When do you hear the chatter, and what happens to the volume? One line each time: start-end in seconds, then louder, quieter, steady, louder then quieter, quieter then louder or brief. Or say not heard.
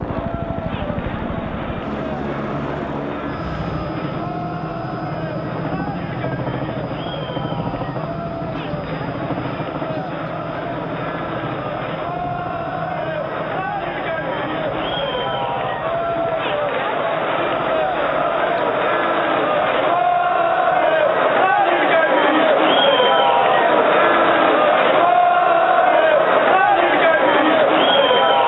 0.0-28.4 louder.